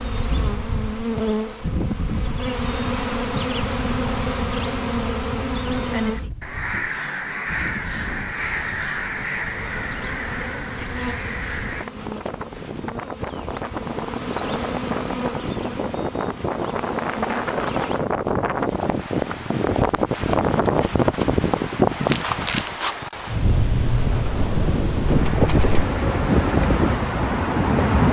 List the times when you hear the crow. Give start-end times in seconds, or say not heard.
6.1-11.9.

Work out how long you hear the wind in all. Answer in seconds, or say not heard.
28 s.